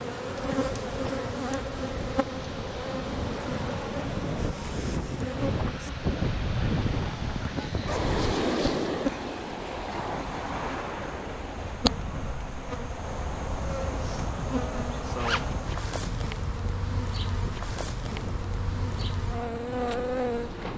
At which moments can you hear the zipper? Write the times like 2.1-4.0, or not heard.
7.8-8.8, 15.2-15.6.